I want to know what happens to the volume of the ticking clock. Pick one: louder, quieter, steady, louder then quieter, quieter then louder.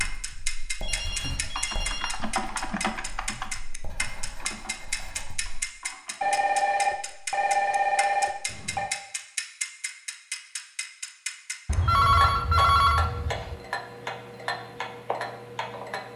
steady.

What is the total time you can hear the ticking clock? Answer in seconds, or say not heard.
16 s.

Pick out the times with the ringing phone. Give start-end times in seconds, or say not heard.
0.8-2.2, 6.2-8.9, 11.7-13.6.